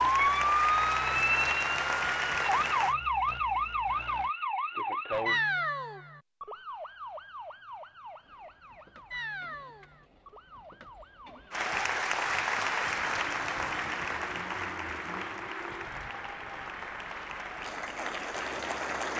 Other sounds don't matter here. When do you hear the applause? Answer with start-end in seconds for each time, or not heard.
0.0-3.0, 11.5-19.1.